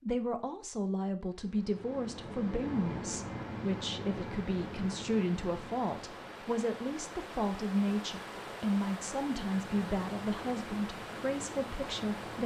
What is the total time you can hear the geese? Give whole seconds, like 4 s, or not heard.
not heard.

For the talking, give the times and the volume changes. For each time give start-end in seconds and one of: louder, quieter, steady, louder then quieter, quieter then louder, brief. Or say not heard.
0.0-12.4 steady.